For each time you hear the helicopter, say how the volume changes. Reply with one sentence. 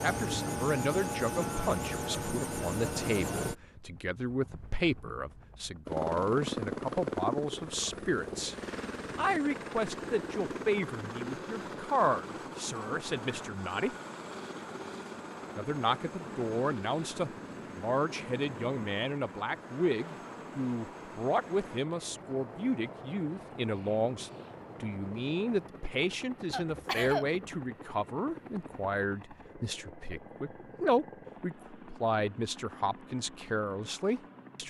You can hear the helicopter from 0.0 to 34.6 s, getting quieter.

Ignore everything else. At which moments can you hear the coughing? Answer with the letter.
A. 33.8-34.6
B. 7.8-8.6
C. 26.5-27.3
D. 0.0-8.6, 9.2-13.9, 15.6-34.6
C.